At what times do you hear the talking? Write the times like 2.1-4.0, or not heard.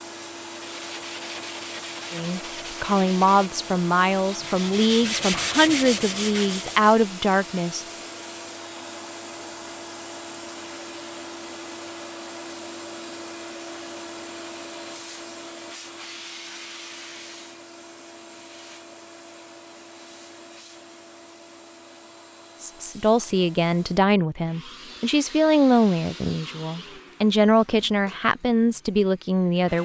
2.1-7.8, 22.6-29.8.